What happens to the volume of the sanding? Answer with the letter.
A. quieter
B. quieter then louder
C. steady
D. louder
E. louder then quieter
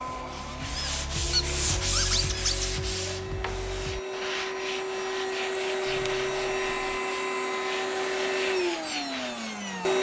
A.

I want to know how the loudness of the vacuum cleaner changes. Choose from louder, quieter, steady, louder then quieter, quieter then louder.
louder.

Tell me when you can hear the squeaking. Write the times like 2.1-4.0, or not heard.
0.8-2.7, 5.8-7.0.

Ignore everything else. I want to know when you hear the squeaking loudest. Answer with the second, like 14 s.
2 s.